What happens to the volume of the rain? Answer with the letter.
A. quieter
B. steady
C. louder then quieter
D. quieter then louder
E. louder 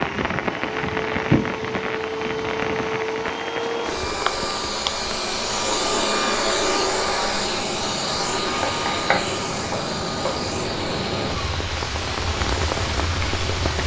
D.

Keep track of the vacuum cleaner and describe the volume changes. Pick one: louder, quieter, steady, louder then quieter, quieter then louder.
louder then quieter.